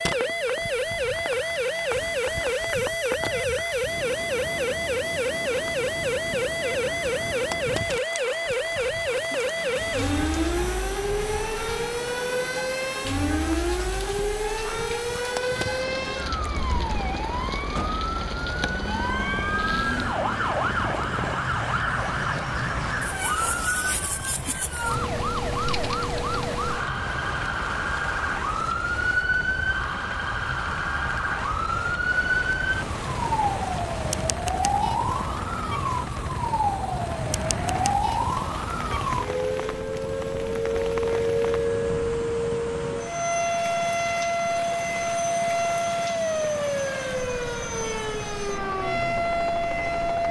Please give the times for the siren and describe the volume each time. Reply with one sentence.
You can hear the siren from 0.0 to 50.2 s, at a steady volume.